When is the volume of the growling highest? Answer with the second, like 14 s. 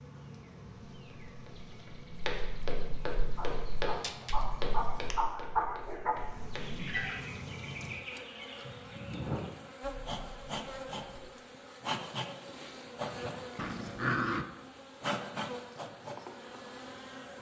14 s.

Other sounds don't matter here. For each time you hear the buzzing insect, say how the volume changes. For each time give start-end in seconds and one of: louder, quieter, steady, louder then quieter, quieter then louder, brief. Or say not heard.
0.0-17.3 louder.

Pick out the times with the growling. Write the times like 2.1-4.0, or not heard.
4.0-5.1, 13.6-14.4.